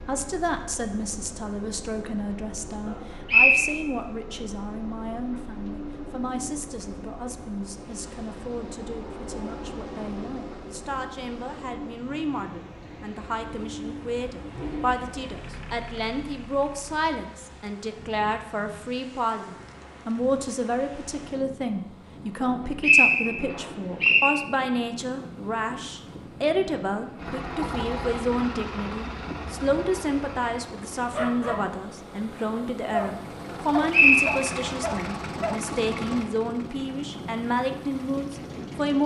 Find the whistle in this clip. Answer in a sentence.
You can hear the whistle from 3.2 to 3.7 s, from 22.4 to 24.3 s and from 33.5 to 34.7 s.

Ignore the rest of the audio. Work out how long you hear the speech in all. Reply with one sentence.
You can hear the speech for 39 seconds altogether.